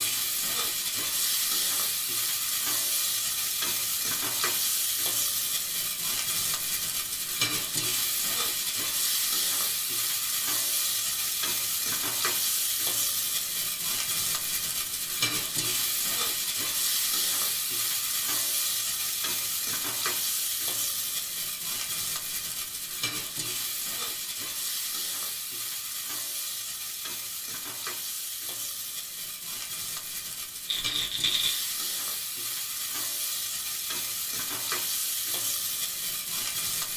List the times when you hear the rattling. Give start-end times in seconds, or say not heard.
30.6-31.7.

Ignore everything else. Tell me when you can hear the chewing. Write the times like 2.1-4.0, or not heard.
not heard.